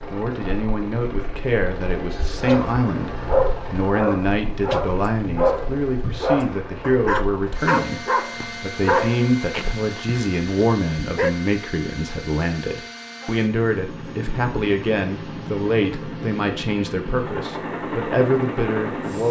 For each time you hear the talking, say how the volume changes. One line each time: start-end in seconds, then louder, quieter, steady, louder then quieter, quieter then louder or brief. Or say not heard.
0.1-19.2 steady.